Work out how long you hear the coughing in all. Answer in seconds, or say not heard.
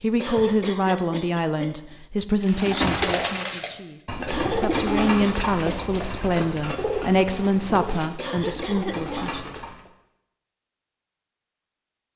4 s.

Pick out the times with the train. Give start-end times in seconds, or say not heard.
not heard.